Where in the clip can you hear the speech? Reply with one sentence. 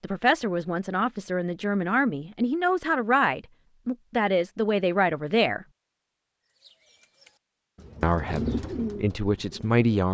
You can hear the speech from 0.0 to 5.7 s and from 8.0 to 10.0 s.